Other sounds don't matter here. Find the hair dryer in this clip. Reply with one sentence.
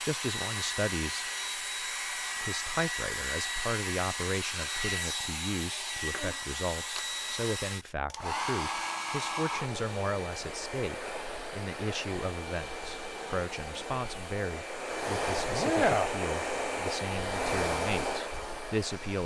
You can hear the hair dryer from 0.0 to 19.2 s.